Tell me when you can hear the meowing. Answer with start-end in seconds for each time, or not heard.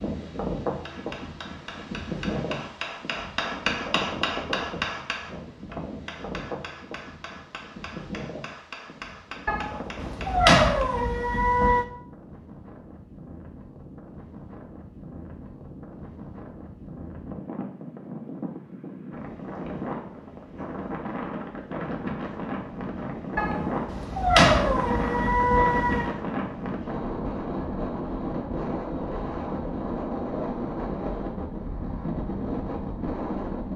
9.4-11.8, 23.4-26.1.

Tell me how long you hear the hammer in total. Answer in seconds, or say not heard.
10 s.